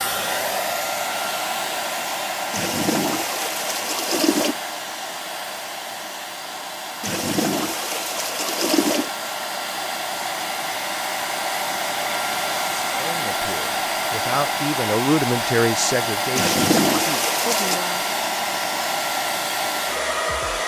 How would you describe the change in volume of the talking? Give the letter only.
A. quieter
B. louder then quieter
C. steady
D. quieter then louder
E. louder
B.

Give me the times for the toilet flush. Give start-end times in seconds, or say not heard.
2.5-4.5, 7.0-9.1, 16.4-17.8.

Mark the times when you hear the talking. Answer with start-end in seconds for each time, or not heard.
12.9-18.1.